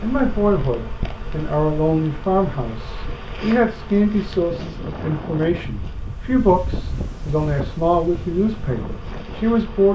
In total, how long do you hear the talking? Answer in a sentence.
You can hear the talking for 10 seconds altogether.